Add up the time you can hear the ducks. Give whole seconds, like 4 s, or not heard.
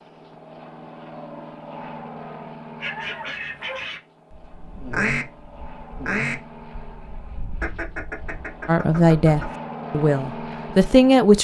7 s.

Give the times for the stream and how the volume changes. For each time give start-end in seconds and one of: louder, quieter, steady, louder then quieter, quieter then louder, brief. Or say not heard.
not heard.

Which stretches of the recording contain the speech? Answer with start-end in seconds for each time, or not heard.
8.7-11.3.